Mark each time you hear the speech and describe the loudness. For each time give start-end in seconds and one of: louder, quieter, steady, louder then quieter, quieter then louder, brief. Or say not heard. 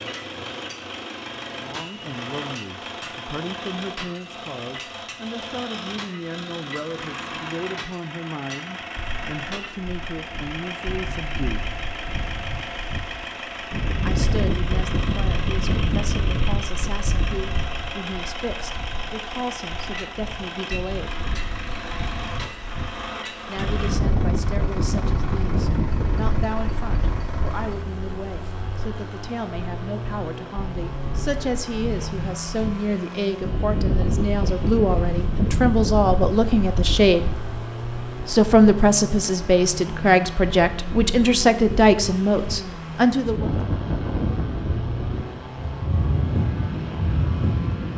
1.5-11.8 steady
14.1-21.1 steady
23.4-37.4 louder
38.2-43.5 steady.